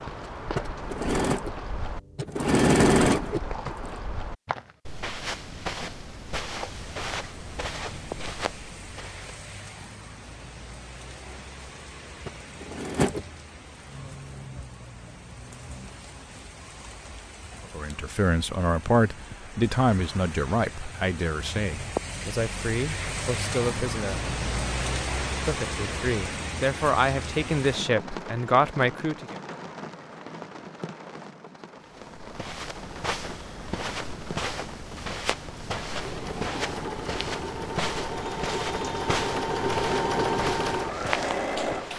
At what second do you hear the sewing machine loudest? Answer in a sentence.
The loudest moment of the sewing machine is at 3 seconds.